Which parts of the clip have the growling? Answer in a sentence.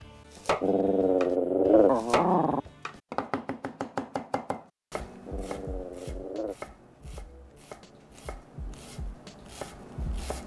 You can hear the growling from 0.6 to 2.6 s and from 5.2 to 6.5 s.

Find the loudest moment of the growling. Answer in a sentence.
The volume of the growling peaks at 2 seconds.